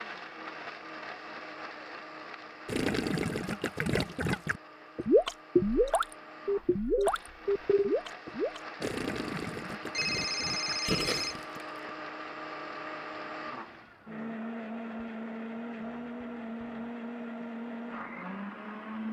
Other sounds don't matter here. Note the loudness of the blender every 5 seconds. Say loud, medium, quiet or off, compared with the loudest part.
medium, medium, loud, loud.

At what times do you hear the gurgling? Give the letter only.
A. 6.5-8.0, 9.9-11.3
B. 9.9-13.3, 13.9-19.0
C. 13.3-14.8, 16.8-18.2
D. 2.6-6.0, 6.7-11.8
D.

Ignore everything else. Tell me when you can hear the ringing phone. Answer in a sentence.
You can hear the ringing phone from 6.5 to 8.0 s and from 9.9 to 11.3 s.